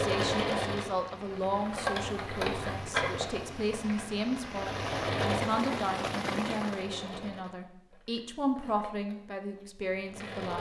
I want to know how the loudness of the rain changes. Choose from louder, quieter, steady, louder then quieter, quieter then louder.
louder.